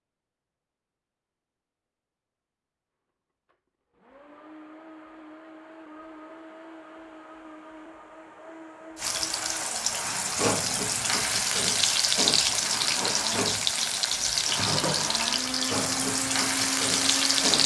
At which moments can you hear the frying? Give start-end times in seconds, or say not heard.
8.9-17.6.